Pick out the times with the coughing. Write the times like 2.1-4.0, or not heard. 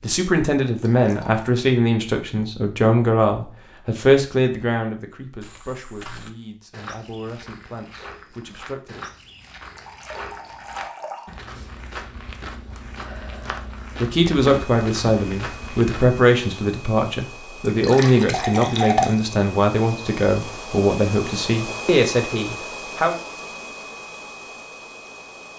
not heard.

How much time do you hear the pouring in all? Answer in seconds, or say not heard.
4 s.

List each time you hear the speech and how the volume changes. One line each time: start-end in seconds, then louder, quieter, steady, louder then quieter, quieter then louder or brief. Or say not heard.
0.0-9.1 quieter
14.0-23.1 steady.